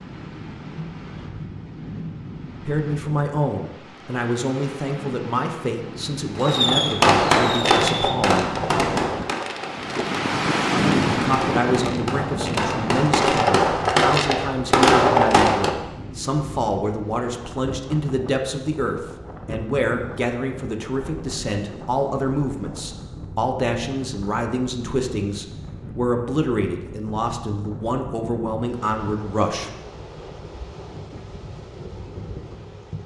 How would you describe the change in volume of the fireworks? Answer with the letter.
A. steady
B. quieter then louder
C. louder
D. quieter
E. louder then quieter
B.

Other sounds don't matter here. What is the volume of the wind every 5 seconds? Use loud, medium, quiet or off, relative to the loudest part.
quiet, medium, loud, quiet, quiet, quiet, quiet.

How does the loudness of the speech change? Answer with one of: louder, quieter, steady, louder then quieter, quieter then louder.
steady.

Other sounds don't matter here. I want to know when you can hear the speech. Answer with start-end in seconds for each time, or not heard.
2.6-8.5, 11.1-29.7.